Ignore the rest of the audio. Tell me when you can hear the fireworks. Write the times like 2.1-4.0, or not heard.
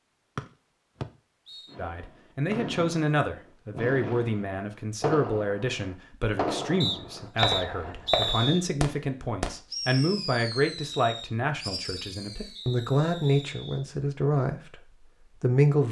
1.6-13.4.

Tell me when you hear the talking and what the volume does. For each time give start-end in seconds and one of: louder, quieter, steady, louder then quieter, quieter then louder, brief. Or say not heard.
1.8-15.8 steady.